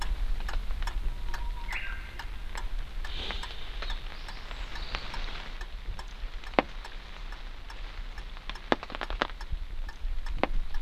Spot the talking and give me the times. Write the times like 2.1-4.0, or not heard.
not heard.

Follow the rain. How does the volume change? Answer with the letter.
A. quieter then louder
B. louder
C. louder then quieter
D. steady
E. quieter
B.